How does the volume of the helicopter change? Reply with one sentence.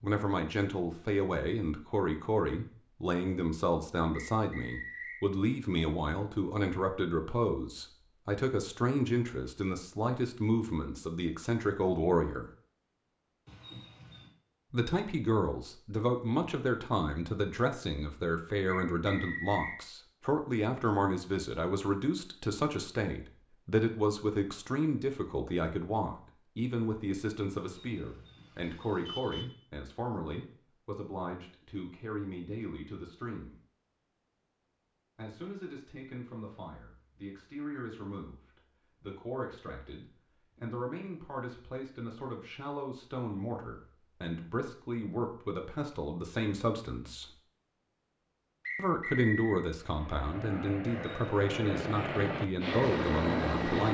The volume of the helicopter goes up.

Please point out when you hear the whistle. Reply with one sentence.
The whistle can be heard from 4.1 to 5.2 s, from 18.6 to 19.8 s and from 48.6 to 49.6 s.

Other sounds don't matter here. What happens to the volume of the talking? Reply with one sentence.
The volume of the talking goes down, then up.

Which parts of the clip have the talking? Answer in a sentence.
You can hear the talking from 0.0 to 12.4 s, from 14.7 to 33.5 s, from 35.1 to 47.4 s and from 48.8 to 53.8 s.